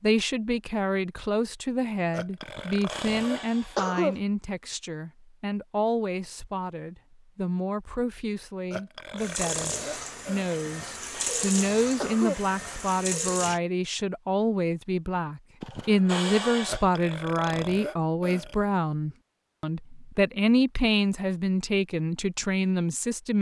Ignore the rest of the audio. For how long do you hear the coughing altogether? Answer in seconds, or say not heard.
5 s.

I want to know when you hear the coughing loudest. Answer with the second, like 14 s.
4 s.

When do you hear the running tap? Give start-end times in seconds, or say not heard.
9.2-13.6.